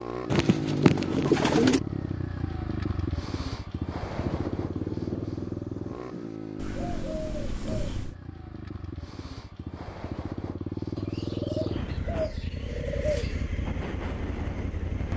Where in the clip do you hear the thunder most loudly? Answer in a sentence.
The loudest moment of the thunder is at 4 seconds.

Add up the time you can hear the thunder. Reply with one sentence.
You can hear the thunder for 2 seconds altogether.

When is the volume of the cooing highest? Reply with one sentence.
The volume of the cooing peaks at 1 second.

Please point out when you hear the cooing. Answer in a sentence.
You can hear the cooing from 0.3 to 1.8 s, from 6.5 to 8.2 s and from 10.9 to 13.3 s.